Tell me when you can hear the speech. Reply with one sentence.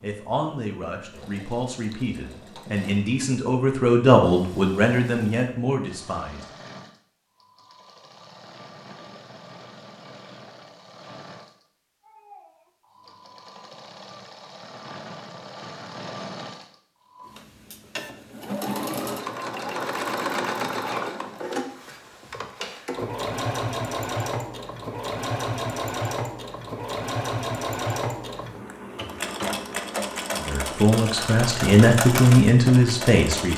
The speech can be heard from 0.0 to 6.5 s and from 30.4 to 33.5 s.